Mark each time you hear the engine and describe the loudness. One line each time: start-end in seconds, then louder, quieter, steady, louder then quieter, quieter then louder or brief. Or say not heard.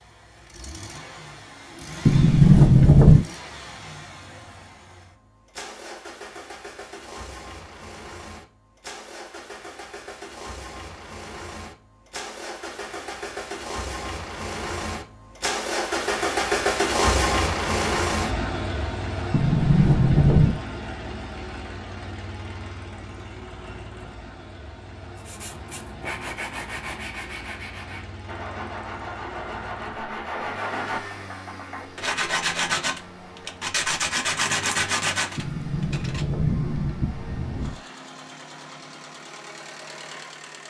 0.0-40.6 louder then quieter.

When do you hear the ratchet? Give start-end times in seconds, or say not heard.
not heard.